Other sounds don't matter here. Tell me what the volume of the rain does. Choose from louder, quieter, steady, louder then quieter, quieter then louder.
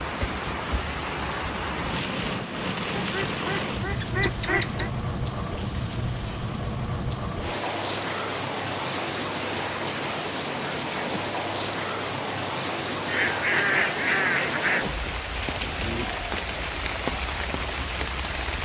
steady.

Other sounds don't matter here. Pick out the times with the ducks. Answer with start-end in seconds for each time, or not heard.
3.0-4.9, 13.1-14.8.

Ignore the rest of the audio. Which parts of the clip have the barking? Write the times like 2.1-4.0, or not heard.
not heard.